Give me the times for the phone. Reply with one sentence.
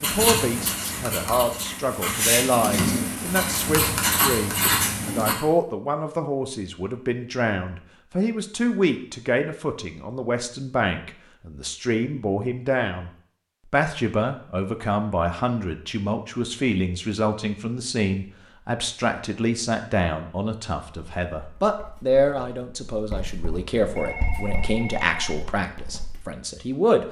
You can hear the phone from 23.9 to 25.4 s.